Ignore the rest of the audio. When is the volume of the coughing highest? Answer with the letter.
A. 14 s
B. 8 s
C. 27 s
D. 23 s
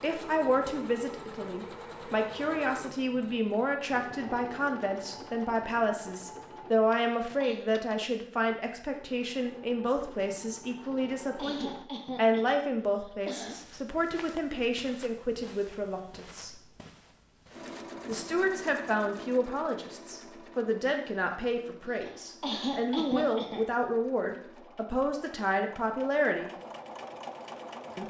D.